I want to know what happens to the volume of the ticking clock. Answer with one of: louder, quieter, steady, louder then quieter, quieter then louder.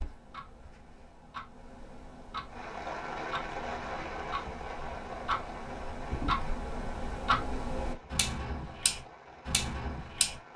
louder.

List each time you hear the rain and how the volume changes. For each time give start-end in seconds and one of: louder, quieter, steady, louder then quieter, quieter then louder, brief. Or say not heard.
2.5-10.5 quieter.